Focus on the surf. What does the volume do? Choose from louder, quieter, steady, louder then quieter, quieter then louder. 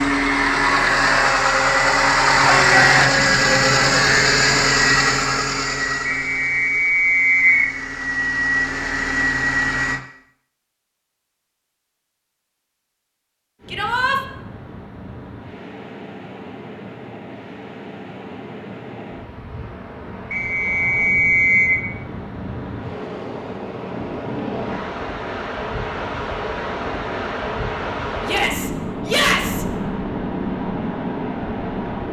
louder.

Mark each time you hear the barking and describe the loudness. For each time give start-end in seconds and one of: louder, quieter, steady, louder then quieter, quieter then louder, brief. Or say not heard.
not heard.